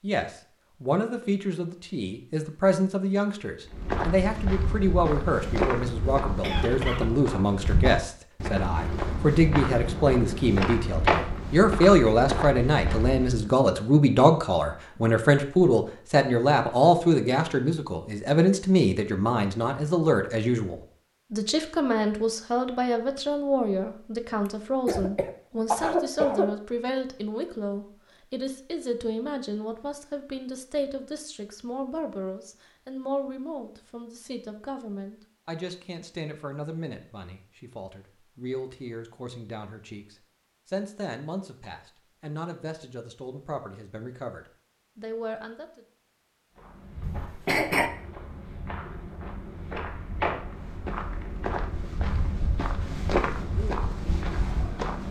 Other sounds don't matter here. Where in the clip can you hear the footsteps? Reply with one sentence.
You can hear the footsteps from 3.7 to 13.4 s and from 46.5 to 55.0 s.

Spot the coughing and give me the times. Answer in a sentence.
The coughing can be heard from 6.4 to 7.0 s, from 24.4 to 26.5 s and from 47.0 to 47.9 s.